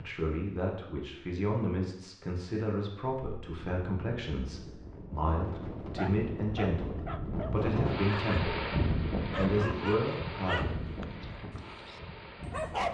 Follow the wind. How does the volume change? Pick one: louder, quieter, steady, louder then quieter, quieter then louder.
louder then quieter.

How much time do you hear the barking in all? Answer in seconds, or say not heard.
6 s.